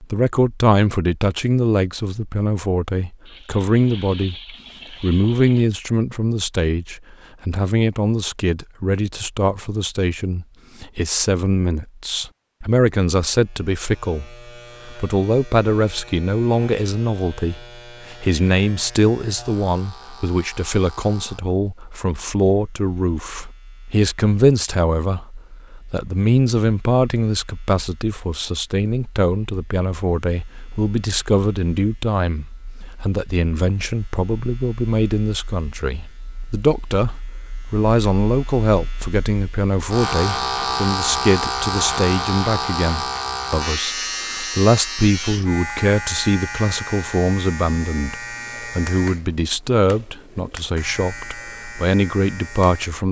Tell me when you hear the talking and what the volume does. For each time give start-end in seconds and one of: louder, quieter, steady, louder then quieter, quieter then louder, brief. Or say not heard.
0.0-53.0 steady.